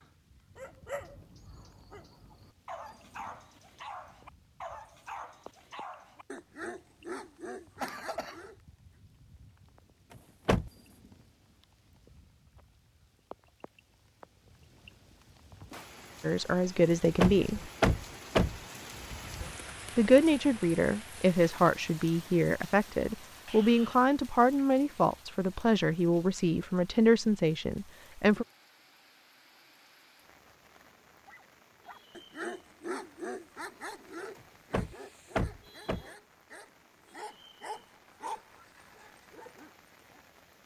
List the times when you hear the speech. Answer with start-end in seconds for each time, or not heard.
16.2-17.6, 19.9-28.4.